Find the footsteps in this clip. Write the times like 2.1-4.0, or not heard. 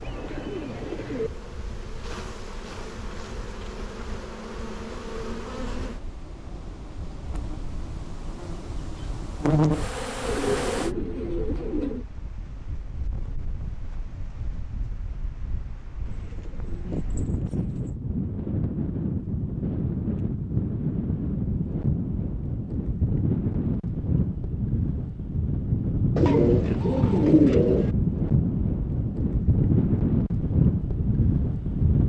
not heard.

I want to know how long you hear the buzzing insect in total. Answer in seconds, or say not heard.
11 s.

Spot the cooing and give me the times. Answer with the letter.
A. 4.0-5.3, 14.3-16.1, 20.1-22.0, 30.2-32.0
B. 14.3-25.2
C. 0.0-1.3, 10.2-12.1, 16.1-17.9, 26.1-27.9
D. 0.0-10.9
C.